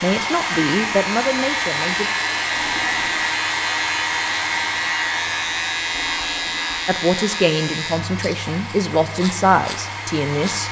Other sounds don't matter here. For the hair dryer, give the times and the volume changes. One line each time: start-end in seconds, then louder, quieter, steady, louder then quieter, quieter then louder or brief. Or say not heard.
0.0-10.6 quieter.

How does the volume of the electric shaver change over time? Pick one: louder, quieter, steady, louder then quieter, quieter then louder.
quieter.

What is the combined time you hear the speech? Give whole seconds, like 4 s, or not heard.
6 s.